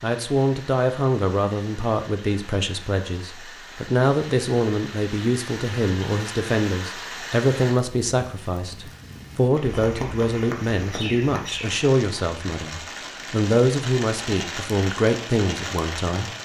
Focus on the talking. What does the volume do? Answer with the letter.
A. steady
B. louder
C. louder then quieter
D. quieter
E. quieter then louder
A.